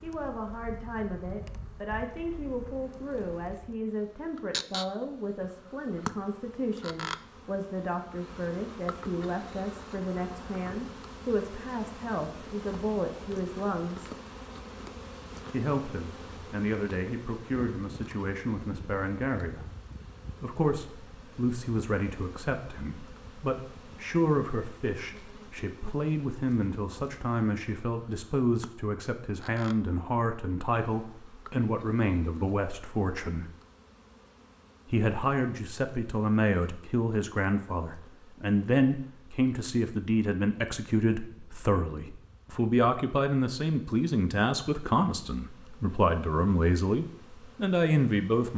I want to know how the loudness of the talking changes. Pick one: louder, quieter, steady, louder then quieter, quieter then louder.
louder.